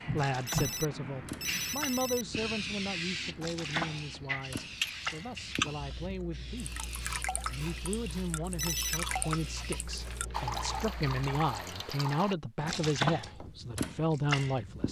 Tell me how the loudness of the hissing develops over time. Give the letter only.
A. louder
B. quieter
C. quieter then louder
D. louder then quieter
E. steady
B.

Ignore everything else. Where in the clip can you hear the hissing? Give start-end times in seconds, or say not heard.
0.0-10.9.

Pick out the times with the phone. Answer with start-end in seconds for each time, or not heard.
0.5-2.2, 8.6-9.0.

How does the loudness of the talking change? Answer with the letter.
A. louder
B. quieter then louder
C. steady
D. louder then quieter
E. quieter
B.